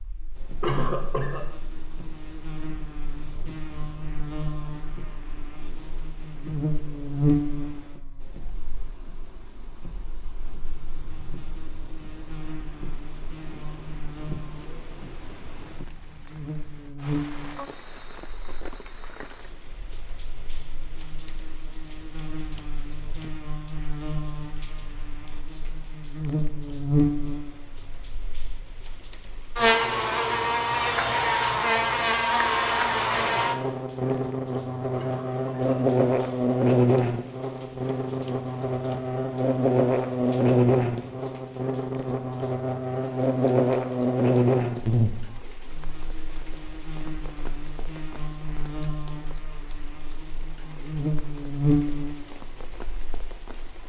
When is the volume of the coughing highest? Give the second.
1 s.